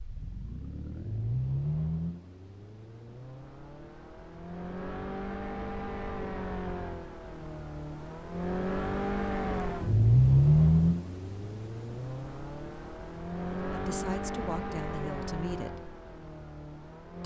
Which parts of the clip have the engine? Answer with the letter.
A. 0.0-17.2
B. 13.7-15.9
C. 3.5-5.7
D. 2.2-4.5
A.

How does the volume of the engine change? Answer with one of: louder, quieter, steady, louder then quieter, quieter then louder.
louder then quieter.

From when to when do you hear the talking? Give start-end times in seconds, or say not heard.
13.7-15.9.